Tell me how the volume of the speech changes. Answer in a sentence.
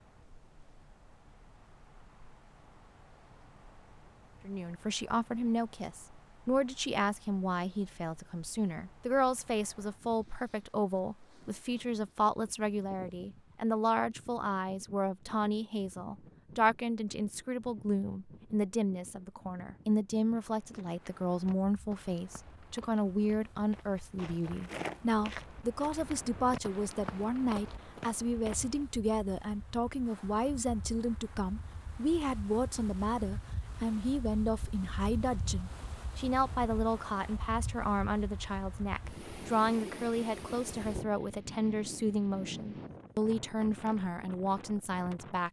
The loudness of the speech stays about the same.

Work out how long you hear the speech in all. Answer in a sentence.
The speech can be heard for 41 seconds in total.